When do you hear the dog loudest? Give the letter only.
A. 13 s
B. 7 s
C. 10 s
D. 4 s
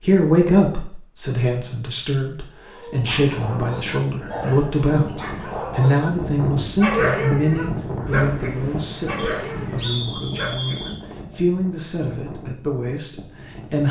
B.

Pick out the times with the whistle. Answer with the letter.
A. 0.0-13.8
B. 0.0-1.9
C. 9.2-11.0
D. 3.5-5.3
C.